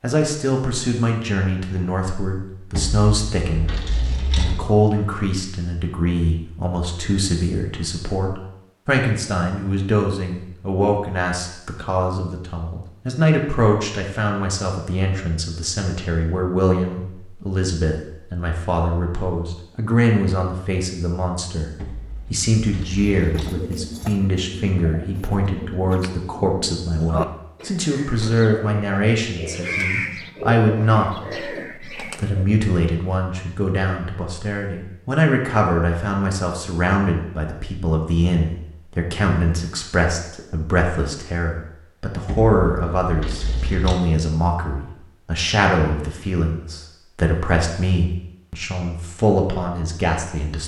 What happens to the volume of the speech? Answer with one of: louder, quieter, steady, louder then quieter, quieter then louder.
steady.